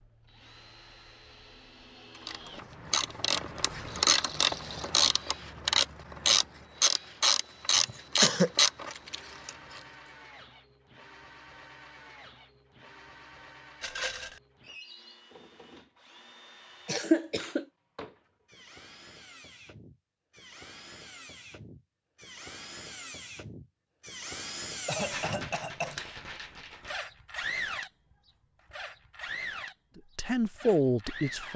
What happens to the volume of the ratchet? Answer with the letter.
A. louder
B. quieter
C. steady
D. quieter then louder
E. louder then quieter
A.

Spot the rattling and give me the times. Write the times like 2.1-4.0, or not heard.
3.9-4.9, 13.8-14.4, 25.0-27.0.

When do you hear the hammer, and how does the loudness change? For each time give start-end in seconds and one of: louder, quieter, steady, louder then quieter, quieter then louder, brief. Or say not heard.
not heard.